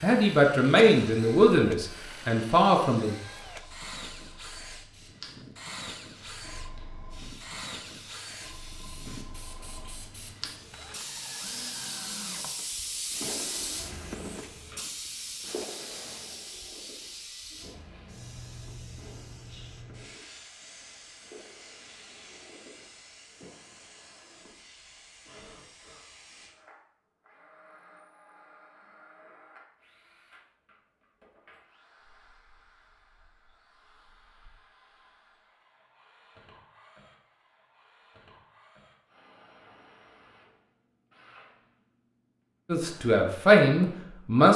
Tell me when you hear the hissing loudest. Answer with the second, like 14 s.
13 s.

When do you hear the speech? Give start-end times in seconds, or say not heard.
0.0-3.1, 42.7-44.5.